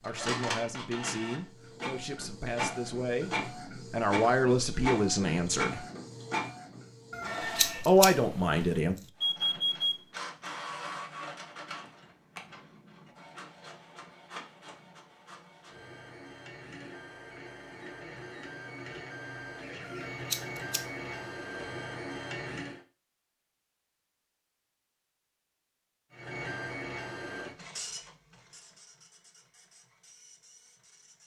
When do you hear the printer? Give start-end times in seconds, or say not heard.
0.0-7.8, 9.2-22.8, 26.1-31.2.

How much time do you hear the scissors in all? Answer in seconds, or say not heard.
2 s.